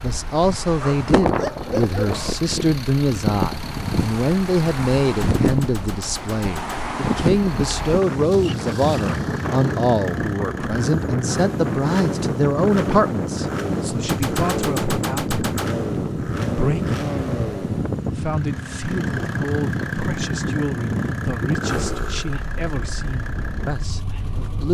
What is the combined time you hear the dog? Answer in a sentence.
You can hear the dog for 2 seconds altogether.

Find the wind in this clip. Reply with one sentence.
You can hear the wind from 0.0 to 24.6 s.